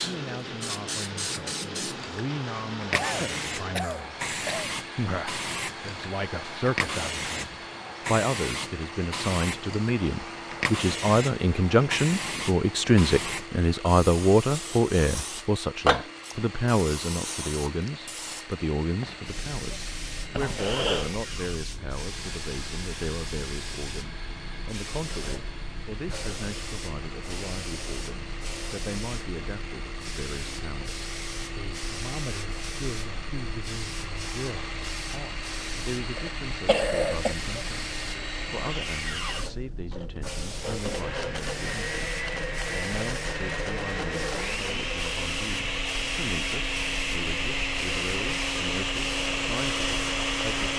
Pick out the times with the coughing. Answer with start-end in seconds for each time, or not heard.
2.9-4.7, 20.3-21.2, 36.1-37.4.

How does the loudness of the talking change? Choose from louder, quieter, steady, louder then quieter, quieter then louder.
louder then quieter.